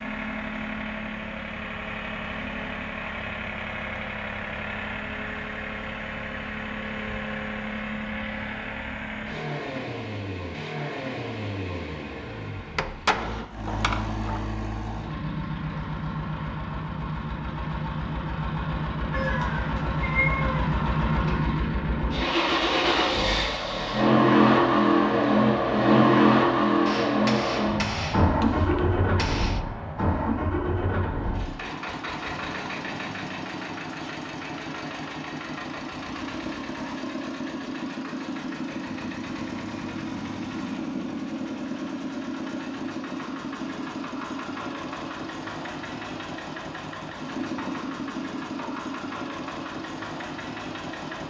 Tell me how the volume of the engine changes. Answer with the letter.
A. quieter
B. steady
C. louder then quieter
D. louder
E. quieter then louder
C.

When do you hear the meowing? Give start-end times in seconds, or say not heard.
19.1-20.6.